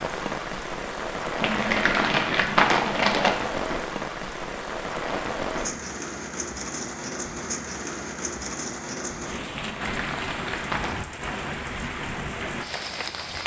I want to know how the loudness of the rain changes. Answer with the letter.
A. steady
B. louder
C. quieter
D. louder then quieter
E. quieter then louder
A.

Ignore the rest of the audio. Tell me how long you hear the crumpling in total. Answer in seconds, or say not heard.
3 s.